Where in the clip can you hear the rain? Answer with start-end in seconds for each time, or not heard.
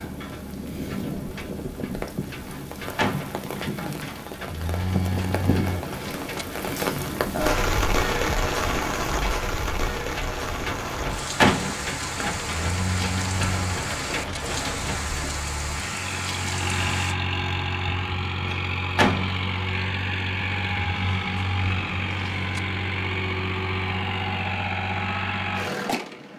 0.0-17.1.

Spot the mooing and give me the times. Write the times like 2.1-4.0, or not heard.
4.5-6.5, 12.5-14.4, 20.9-22.6.